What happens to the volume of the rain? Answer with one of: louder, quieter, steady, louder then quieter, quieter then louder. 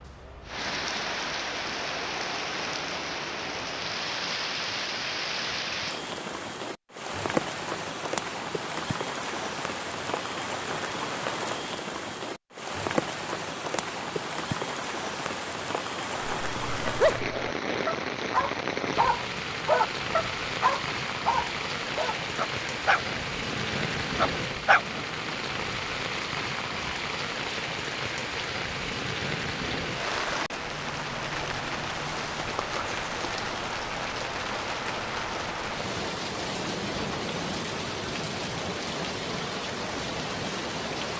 steady.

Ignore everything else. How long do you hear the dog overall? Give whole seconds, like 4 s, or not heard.
9 s.